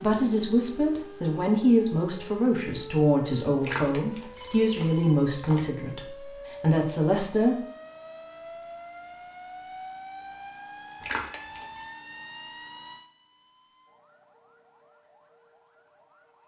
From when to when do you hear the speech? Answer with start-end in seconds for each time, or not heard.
0.0-7.5.